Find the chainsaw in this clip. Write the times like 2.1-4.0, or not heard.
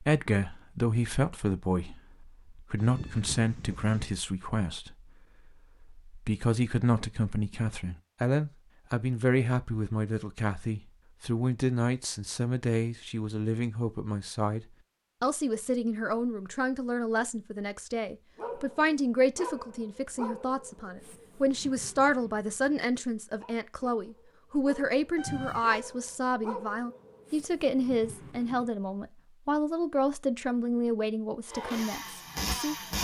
31.4-33.0.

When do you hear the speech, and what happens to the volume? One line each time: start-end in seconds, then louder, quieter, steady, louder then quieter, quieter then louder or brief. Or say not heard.
0.0-5.1 steady
5.8-32.8 steady.